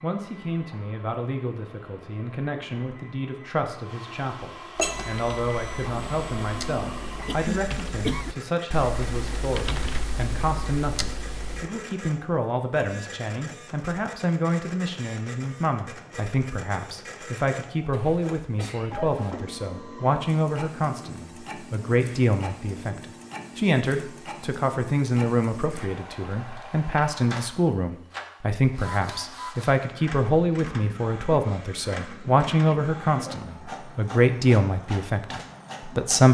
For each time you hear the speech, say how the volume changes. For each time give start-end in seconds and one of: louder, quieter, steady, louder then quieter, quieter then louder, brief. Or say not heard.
0.0-36.3 louder.